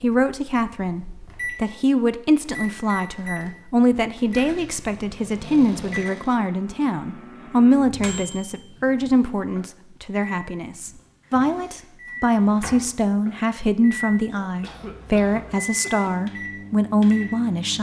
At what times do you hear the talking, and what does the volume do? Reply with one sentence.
The talking can be heard from 0.0 to 17.7 s, at a steady volume.